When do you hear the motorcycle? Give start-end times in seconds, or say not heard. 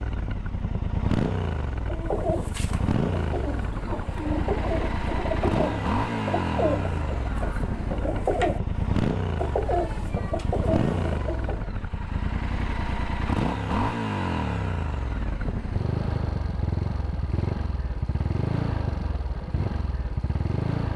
0.0-20.9.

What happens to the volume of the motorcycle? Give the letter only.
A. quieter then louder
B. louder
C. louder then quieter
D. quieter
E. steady
E.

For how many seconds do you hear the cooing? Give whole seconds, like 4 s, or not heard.
10 s.